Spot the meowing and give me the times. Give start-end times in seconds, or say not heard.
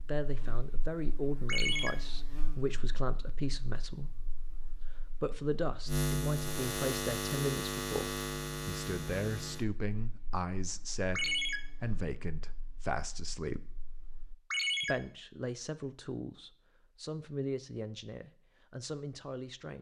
not heard.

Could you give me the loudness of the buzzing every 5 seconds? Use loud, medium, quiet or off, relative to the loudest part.
quiet, loud, quiet, off.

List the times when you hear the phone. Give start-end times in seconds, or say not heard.
1.4-1.9, 11.2-11.6, 14.5-14.9.